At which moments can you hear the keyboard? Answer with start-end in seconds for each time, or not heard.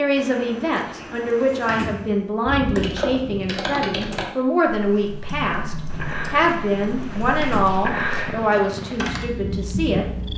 2.7-9.2.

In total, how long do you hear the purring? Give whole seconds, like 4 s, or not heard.
6 s.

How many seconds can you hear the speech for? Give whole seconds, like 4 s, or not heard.
10 s.